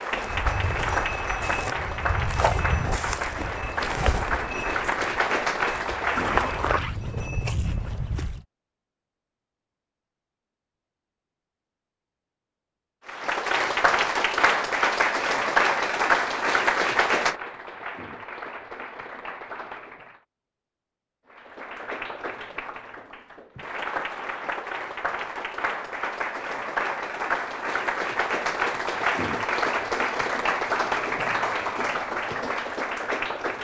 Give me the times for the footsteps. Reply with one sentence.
You can hear the footsteps from 0.1 to 8.4 s.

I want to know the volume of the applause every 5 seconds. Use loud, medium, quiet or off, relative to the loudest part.
medium, loud, loud, loud, medium, loud, loud.